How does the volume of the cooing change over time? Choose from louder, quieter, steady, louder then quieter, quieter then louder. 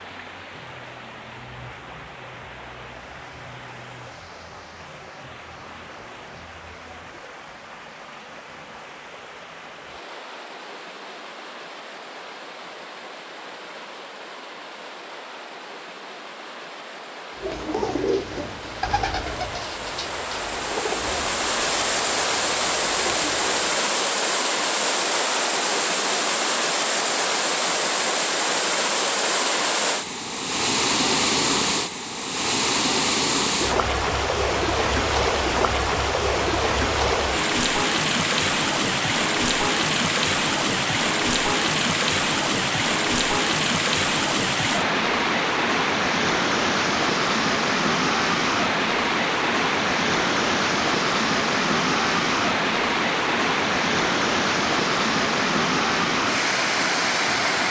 quieter.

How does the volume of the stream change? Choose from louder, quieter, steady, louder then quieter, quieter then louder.
louder.